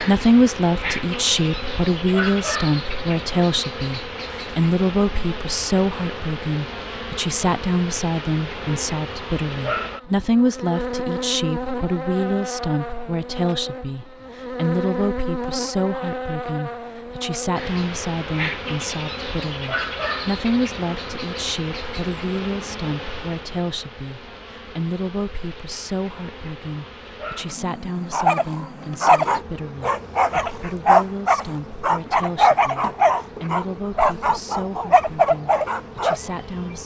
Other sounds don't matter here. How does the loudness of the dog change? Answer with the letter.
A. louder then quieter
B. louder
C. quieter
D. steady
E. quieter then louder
D.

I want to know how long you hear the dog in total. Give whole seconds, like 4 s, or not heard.
8 s.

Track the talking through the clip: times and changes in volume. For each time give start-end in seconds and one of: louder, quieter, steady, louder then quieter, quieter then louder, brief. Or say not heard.
0.0-36.8 quieter.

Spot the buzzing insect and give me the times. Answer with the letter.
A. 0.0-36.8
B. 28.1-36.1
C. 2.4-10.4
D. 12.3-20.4
A.